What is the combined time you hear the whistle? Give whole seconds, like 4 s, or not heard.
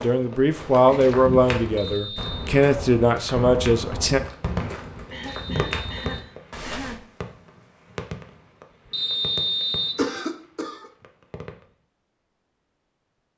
3 s.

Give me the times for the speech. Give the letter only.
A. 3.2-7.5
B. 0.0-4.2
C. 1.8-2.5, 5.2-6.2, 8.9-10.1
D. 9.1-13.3
B.